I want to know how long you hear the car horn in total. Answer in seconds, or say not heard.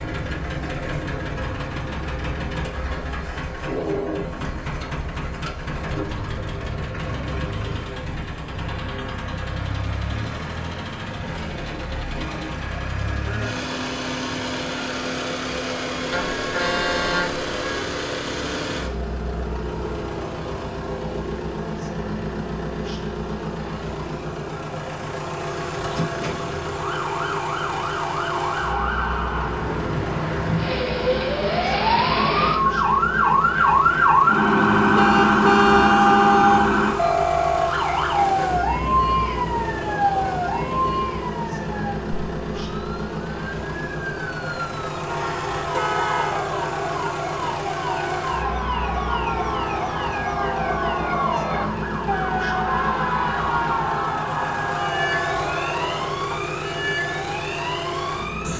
4 s.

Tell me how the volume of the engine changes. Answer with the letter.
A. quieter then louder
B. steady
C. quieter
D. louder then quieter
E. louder
B.